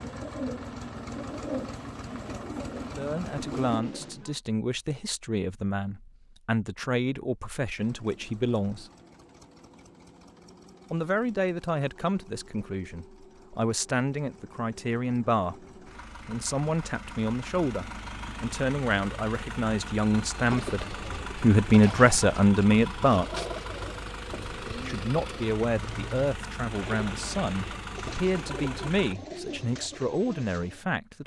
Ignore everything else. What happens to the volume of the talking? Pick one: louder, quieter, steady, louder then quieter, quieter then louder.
louder then quieter.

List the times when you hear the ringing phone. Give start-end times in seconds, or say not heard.
not heard.